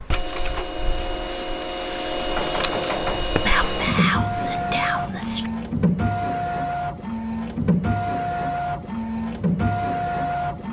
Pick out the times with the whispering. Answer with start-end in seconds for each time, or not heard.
3.5-5.5.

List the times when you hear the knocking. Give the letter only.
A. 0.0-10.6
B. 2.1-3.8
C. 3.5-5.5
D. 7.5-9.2
B.